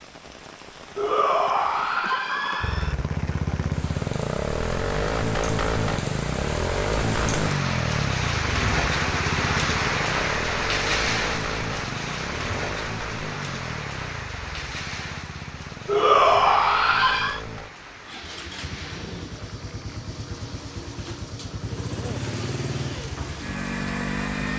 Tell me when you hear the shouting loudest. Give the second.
16 s.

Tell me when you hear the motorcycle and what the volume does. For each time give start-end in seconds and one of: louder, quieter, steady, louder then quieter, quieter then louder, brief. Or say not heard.
2.6-24.5 quieter then louder.